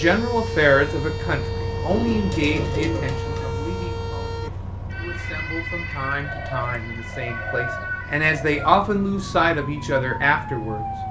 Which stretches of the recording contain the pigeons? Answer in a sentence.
The pigeons can be heard from 1.9 to 3.5 s and from 6.2 to 8.6 s.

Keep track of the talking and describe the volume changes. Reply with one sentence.
The volume of the talking goes down, then up.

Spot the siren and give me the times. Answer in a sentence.
You can hear the siren from 0.0 to 11.0 s.